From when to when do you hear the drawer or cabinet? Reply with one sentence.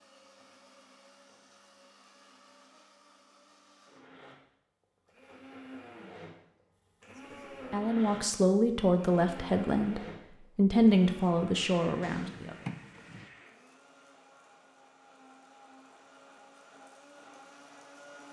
The drawer or cabinet can be heard from 12.0 to 13.3 s.